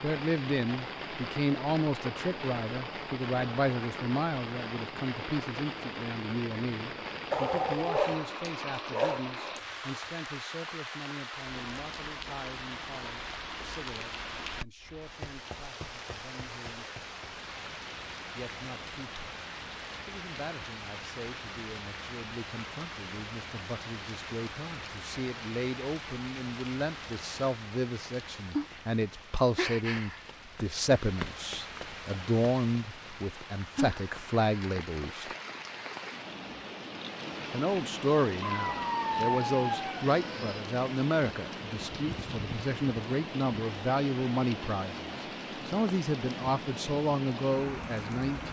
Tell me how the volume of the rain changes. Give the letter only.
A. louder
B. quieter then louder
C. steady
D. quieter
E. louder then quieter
C.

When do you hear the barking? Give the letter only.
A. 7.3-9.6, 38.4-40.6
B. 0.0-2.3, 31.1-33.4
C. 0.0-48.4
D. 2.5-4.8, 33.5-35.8
A.